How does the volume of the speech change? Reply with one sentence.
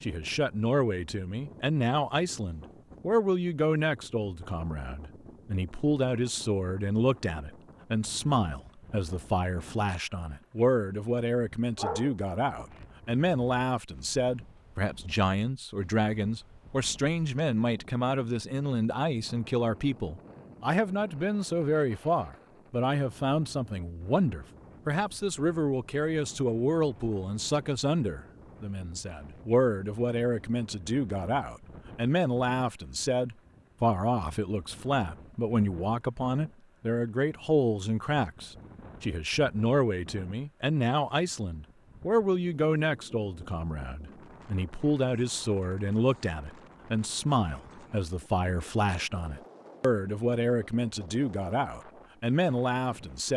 The volume of the speech stays about the same.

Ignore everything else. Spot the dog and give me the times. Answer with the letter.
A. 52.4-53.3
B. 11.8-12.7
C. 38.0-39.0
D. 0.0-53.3
B.